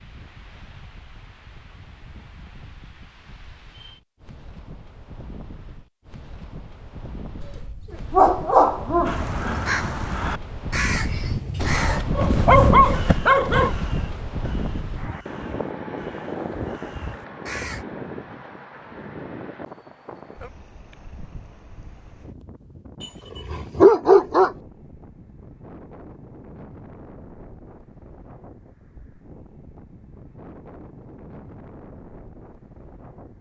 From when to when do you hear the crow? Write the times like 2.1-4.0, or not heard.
9.1-17.9.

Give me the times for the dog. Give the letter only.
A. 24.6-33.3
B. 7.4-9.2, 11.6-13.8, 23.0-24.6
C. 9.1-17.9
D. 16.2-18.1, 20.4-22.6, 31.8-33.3
B.